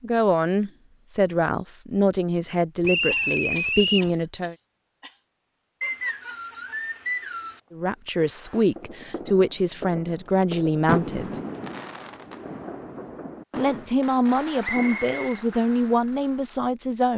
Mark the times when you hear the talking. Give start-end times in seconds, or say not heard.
0.0-4.5, 7.7-11.4, 13.6-17.1.